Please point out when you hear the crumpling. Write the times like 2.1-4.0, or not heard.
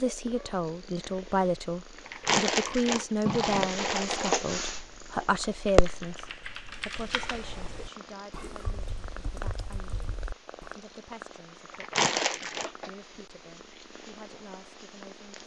2.0-4.5, 11.7-12.7.